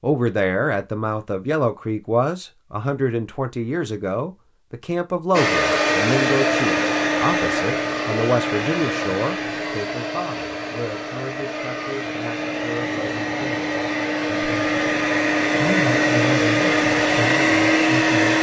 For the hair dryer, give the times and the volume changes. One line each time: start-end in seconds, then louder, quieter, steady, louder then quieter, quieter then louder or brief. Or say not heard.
5.3-18.3 quieter then louder.